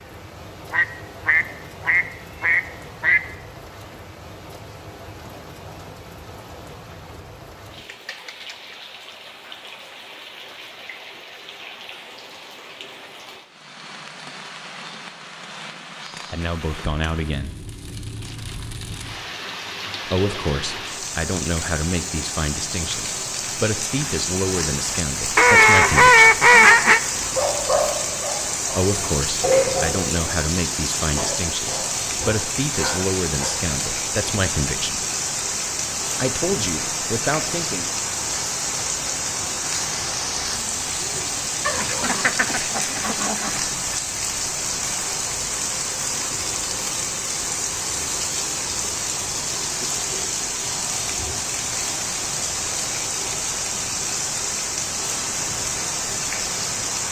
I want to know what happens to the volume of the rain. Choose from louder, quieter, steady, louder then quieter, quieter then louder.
louder.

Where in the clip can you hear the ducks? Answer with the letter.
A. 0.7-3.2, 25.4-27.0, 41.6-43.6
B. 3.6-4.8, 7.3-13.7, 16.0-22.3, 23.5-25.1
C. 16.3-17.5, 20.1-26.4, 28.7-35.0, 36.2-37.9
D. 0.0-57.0
A.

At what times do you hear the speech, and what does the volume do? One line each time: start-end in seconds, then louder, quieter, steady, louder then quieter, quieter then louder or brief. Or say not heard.
16.3-17.5 brief
20.1-26.4 steady
28.7-35.0 steady
36.2-37.9 brief.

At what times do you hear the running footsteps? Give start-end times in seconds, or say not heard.
not heard.